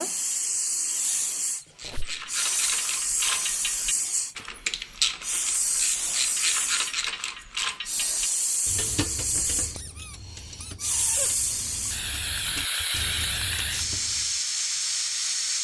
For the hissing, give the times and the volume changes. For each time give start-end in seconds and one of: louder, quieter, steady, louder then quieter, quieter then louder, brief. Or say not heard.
0.0-15.6 steady.